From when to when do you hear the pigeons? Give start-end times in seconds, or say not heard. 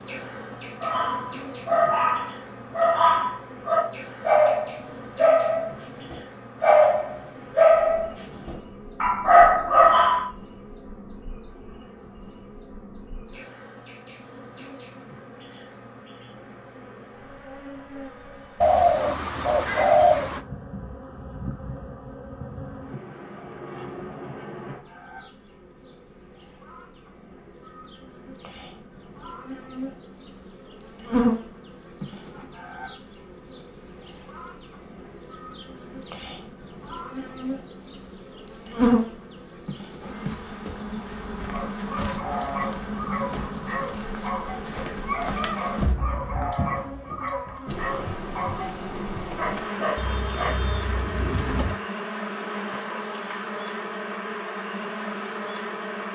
18.6-20.4, 50.0-51.8.